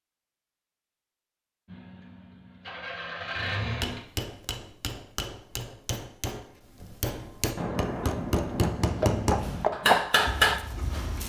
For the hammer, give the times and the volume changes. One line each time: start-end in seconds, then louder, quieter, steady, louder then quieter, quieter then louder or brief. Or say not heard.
3.8-10.6 louder.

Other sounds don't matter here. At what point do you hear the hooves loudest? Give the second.
10 s.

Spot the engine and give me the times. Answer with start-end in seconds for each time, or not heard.
1.6-4.0.